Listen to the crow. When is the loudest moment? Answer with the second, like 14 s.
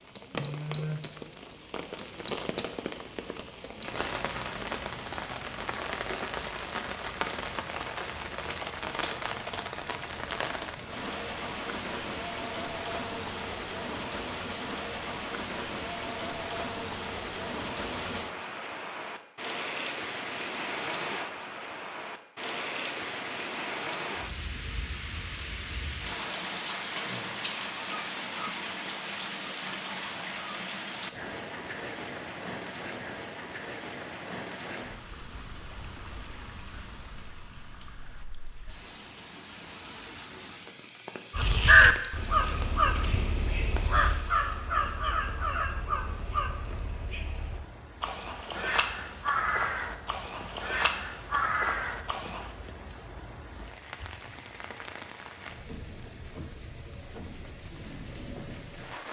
42 s.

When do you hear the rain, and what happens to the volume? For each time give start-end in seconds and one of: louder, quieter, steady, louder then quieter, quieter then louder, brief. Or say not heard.
0.0-59.0 quieter.